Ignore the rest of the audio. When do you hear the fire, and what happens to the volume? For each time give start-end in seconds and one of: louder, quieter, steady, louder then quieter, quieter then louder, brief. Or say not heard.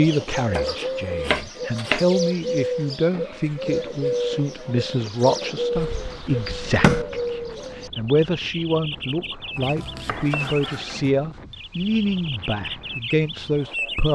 not heard.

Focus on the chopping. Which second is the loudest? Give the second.
7 s.